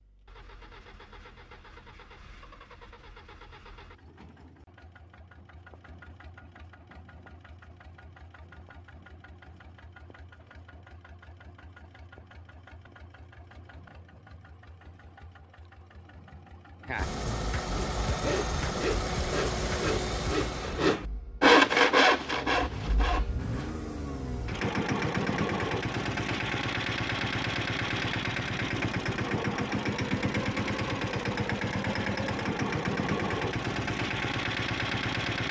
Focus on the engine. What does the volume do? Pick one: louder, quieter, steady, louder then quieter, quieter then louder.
louder.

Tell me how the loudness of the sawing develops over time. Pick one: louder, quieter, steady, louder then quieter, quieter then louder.
louder then quieter.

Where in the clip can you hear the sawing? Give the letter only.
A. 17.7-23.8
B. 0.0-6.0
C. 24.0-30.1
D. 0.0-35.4
A.